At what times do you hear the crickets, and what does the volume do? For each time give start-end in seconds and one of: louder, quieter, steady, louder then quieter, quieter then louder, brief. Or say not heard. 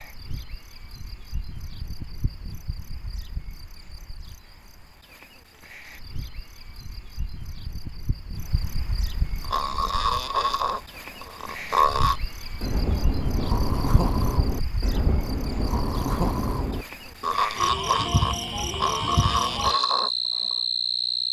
0.0-21.2 louder.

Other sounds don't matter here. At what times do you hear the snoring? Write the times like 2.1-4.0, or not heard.
9.4-20.6.